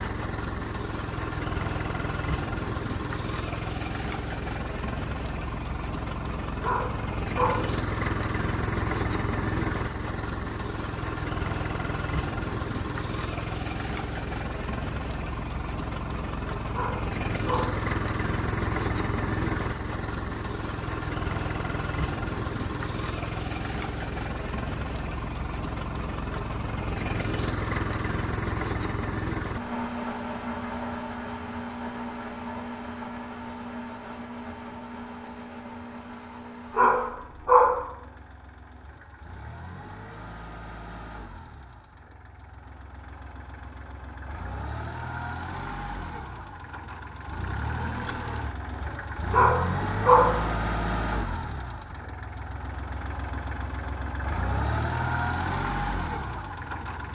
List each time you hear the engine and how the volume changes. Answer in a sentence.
You can hear the engine from 0.0 to 57.0 s, getting quieter then louder.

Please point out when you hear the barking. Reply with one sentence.
You can hear the barking from 6.6 to 7.7 s, from 16.7 to 17.8 s, from 36.8 to 37.9 s and from 49.3 to 50.4 s.